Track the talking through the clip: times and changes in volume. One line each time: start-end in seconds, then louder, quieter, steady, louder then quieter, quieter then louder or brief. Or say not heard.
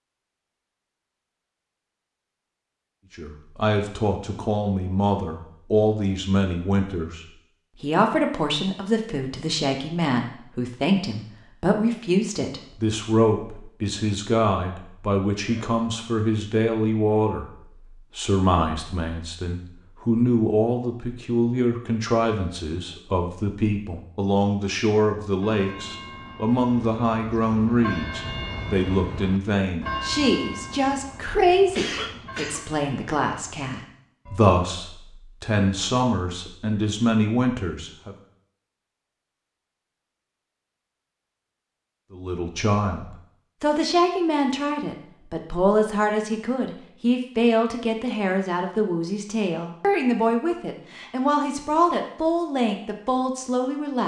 3.1-38.1 steady
42.1-54.0 steady.